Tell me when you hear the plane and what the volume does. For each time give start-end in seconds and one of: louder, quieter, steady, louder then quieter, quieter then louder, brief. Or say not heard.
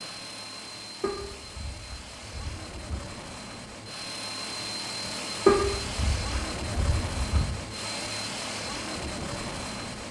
0.0-10.0 louder.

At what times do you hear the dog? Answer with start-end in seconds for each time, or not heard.
1.0-3.0, 5.5-7.5.